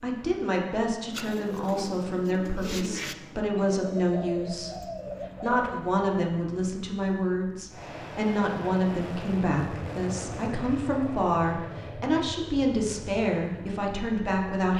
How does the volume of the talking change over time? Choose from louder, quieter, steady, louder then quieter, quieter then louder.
steady.